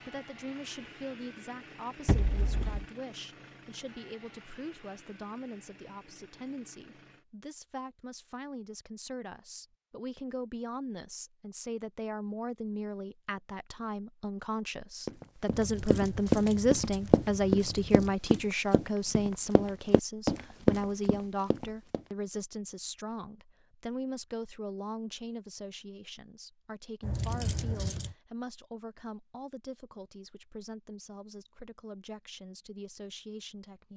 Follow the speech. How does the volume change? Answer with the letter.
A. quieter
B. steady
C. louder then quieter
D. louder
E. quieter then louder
C.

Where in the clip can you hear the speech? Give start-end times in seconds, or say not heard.
0.1-33.9.